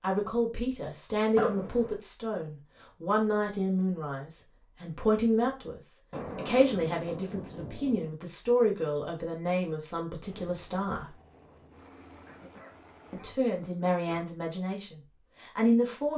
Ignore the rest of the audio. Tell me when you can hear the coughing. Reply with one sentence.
The coughing can be heard from 1.4 to 1.9 s and from 12.2 to 14.2 s.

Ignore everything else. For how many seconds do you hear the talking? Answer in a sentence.
The talking can be heard for 14 seconds in total.